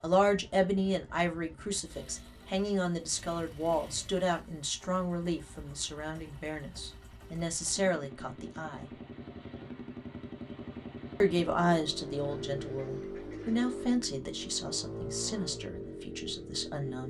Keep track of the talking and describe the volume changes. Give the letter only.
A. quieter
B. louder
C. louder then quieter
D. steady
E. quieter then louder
A.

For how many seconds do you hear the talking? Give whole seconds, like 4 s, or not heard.
15 s.